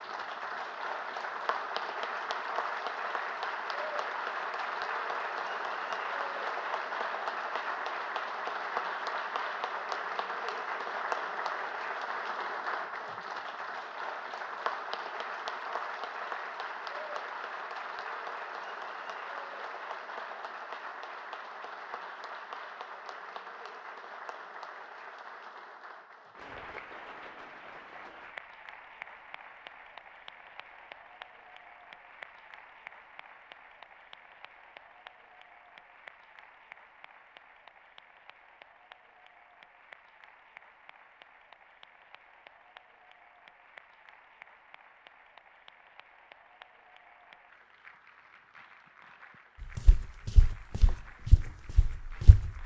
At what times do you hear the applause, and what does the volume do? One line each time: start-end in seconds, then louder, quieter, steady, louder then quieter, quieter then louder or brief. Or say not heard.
0.0-52.6 quieter.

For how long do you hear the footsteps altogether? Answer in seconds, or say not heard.
3 s.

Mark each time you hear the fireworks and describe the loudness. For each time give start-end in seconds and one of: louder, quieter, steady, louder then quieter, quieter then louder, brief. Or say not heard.
not heard.